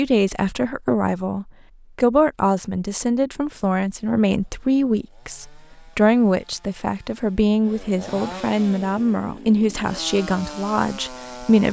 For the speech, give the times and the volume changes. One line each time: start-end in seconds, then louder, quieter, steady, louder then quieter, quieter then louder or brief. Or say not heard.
0.0-11.6 steady.